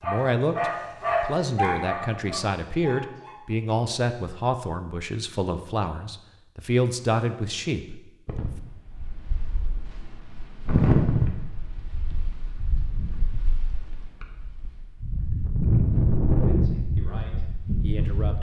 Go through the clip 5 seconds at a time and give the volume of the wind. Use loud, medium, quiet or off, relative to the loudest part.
off, quiet, loud, loud.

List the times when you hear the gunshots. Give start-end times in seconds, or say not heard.
not heard.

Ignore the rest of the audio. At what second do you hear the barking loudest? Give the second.
1 s.